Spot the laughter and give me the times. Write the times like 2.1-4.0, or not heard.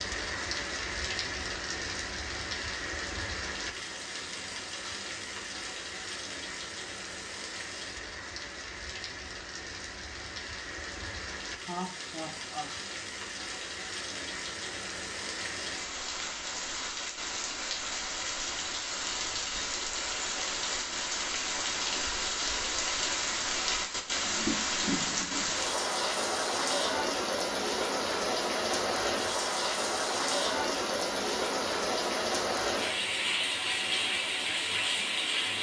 11.6-12.8.